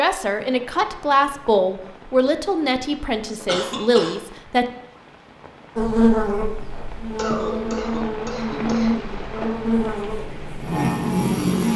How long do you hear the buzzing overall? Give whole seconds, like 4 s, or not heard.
6 s.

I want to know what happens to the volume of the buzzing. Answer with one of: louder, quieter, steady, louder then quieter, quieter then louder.
steady.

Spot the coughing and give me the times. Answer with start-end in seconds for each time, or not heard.
3.5-4.2, 7.2-9.1.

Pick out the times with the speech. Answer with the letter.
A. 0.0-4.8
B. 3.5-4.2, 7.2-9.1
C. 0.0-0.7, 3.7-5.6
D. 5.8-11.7
A.